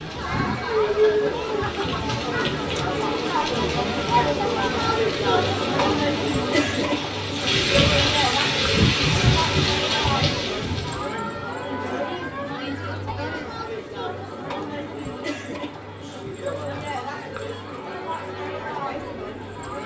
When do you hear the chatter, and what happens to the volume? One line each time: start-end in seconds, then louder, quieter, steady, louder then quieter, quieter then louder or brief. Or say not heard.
0.0-19.8 quieter.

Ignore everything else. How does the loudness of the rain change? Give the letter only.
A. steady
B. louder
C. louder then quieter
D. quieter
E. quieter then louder
B.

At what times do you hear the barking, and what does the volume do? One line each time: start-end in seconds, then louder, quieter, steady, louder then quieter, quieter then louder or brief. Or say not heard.
not heard.